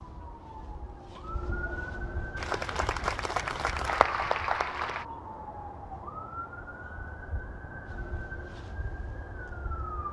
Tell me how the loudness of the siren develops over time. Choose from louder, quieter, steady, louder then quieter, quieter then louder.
steady.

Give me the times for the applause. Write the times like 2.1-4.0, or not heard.
2.4-5.0.